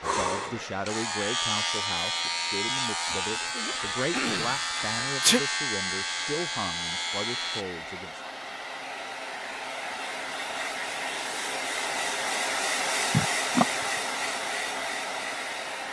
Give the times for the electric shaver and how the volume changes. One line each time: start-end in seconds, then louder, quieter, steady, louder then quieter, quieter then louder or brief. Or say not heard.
0.0-7.7 steady.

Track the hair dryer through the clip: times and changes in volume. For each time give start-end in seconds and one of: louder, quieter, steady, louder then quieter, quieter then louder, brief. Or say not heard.
0.0-15.8 louder.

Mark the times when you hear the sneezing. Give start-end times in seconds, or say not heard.
3.1-5.4, 13.1-13.7.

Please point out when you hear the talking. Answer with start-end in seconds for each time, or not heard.
0.0-8.2.